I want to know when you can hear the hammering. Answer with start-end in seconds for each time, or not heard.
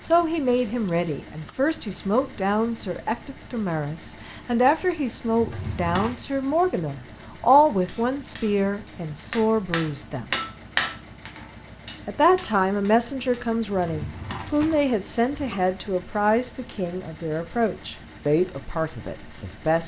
7.8-13.9.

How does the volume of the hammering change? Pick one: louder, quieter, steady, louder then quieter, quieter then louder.
louder then quieter.